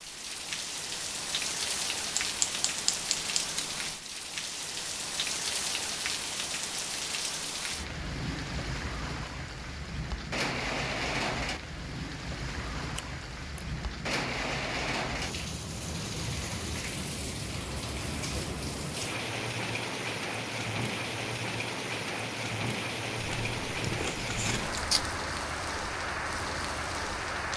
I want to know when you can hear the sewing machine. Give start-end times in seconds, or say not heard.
not heard.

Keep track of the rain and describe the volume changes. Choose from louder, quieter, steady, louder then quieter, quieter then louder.
steady.